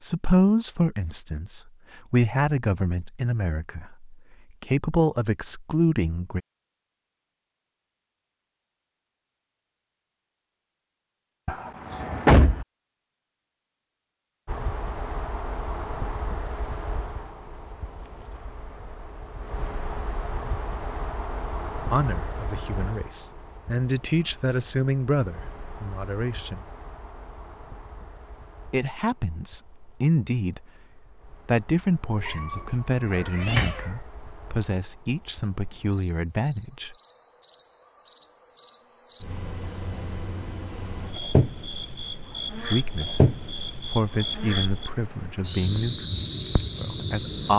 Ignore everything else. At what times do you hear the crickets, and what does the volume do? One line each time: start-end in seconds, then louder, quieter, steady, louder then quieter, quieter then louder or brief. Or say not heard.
14.4-47.5 quieter then louder.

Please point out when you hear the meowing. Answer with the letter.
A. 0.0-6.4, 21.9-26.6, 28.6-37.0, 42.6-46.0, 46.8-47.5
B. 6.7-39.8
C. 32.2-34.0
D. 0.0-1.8
C.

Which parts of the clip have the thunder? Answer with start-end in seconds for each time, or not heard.
not heard.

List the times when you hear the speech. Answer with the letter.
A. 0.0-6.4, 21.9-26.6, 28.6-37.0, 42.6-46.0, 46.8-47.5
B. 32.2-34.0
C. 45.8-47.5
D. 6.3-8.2
A.